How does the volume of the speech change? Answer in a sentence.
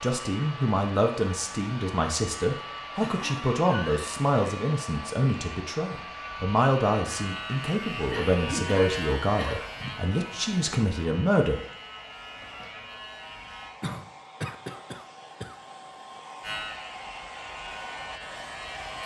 The loudness of the speech stays about the same.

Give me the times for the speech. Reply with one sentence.
The speech can be heard from 0.0 to 11.6 s.